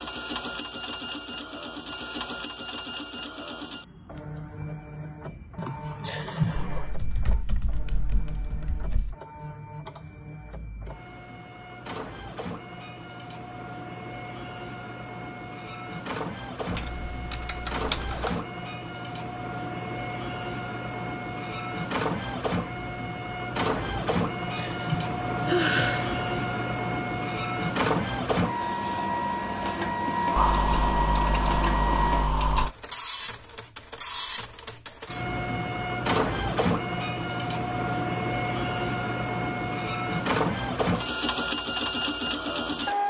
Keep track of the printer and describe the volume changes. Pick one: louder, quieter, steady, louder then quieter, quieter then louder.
louder.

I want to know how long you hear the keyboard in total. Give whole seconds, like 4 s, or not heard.
7 s.